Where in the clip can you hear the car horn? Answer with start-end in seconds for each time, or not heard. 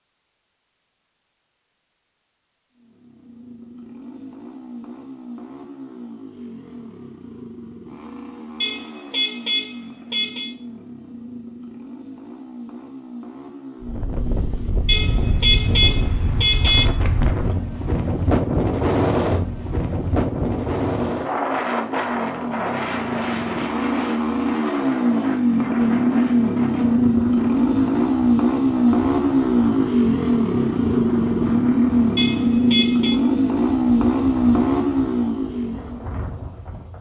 8.6-10.6, 14.8-16.9, 32.1-33.2.